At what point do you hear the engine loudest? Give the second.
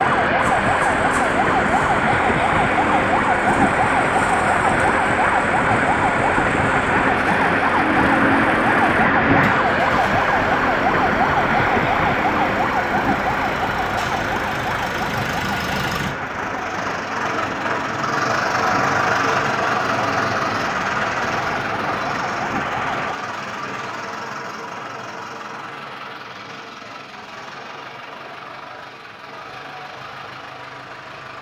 19 s.